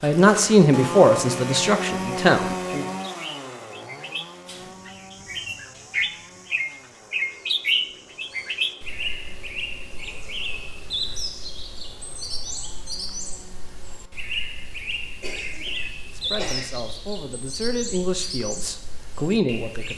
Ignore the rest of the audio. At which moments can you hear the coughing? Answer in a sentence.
You can hear the coughing from 15.2 to 16.6 s.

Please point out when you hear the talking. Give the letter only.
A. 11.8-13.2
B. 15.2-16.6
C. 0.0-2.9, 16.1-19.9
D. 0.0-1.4
C.